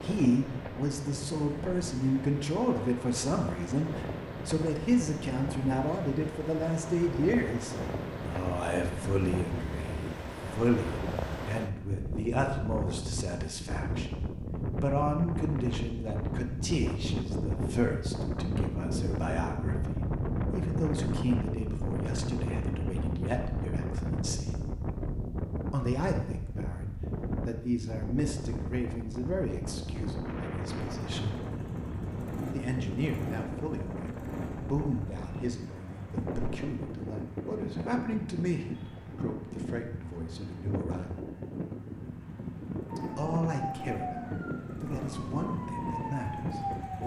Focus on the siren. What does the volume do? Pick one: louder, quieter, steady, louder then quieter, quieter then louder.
quieter then louder.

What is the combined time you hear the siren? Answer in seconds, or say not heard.
4 s.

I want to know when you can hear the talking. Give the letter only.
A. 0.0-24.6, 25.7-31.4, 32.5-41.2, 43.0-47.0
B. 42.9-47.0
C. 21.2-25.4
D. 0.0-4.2
A.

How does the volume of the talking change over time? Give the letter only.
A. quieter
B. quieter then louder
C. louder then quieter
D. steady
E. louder
A.